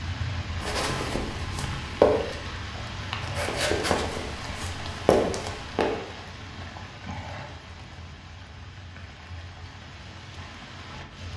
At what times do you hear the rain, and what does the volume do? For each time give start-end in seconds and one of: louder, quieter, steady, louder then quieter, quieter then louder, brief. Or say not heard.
0.0-11.3 quieter.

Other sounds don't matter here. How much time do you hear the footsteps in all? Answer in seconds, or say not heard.
5 s.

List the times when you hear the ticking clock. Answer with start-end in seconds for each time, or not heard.
not heard.